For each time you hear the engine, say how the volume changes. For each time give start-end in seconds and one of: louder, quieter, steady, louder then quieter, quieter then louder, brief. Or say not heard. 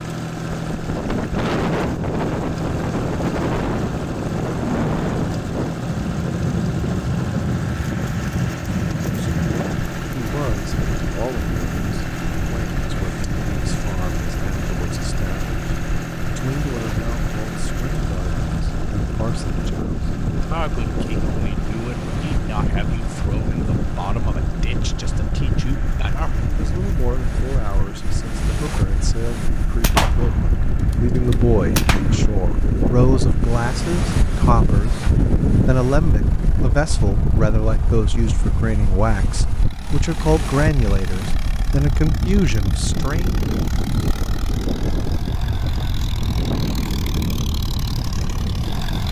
0.0-49.0 quieter.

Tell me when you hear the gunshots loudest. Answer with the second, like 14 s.
30 s.